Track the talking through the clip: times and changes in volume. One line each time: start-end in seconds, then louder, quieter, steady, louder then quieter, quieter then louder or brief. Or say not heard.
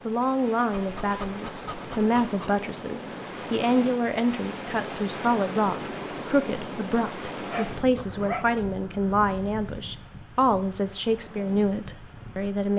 0.1-12.7 steady.